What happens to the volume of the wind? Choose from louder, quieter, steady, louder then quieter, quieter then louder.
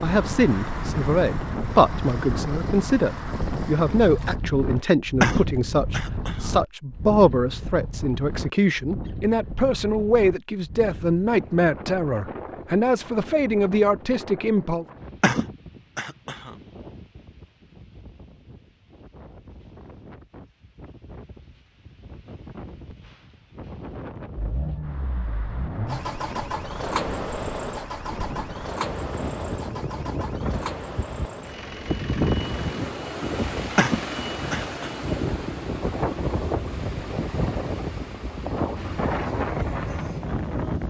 quieter then louder.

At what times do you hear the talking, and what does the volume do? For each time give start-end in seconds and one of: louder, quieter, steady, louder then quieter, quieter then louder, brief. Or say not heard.
0.0-14.8 steady.